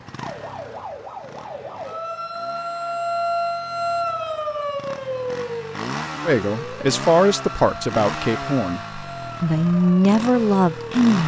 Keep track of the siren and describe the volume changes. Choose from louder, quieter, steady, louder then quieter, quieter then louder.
louder then quieter.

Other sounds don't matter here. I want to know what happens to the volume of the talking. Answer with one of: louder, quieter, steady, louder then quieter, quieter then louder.
quieter then louder.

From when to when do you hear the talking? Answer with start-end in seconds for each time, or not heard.
6.2-11.2.